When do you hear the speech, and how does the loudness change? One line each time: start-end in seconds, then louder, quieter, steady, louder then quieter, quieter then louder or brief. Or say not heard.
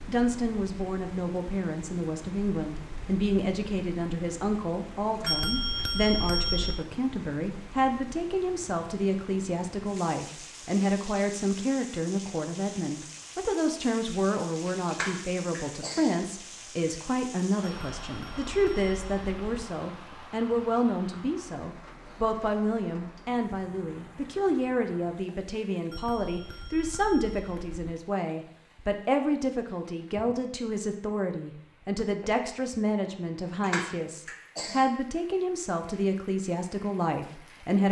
0.1-37.8 steady.